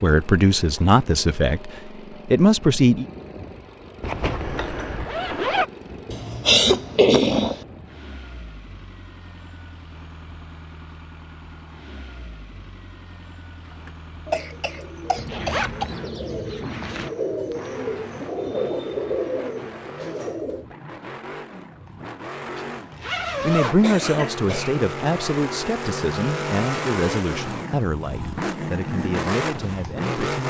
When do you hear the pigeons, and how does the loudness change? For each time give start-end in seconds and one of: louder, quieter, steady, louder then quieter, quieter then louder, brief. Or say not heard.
13.7-20.7 louder.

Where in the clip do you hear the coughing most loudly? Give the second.
7 s.